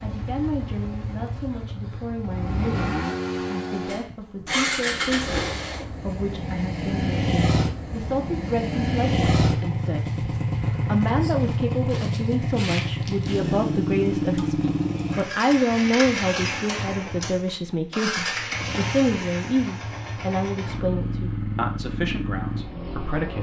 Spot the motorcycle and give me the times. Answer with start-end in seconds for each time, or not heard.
0.0-23.3.